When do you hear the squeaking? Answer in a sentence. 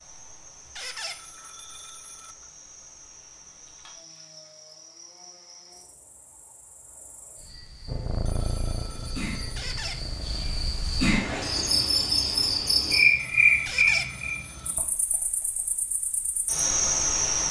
The squeaking can be heard from 0.8 to 1.2 s, from 9.6 to 10.0 s and from 13.7 to 14.1 s.